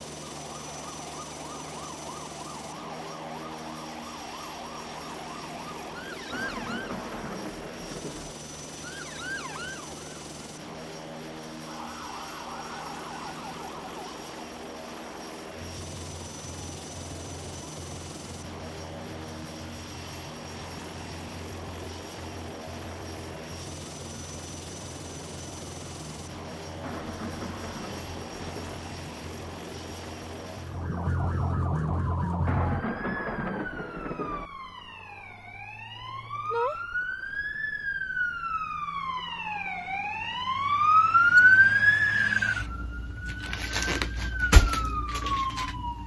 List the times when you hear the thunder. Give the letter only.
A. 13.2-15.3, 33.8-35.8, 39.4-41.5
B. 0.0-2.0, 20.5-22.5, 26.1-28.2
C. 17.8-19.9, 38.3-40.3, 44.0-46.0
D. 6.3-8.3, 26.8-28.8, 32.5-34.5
D.